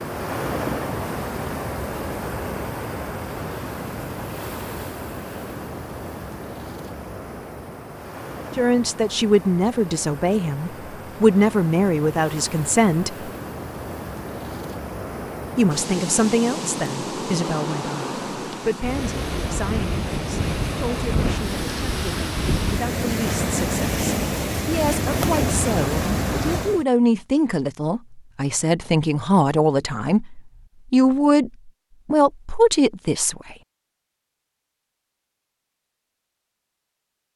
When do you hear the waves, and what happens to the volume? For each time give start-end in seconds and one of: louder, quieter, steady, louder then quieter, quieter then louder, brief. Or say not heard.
0.0-26.9 quieter then louder.